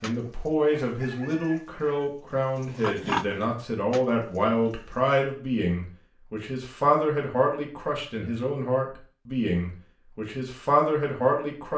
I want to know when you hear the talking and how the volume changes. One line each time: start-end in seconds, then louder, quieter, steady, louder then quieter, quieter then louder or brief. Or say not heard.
0.0-11.7 steady.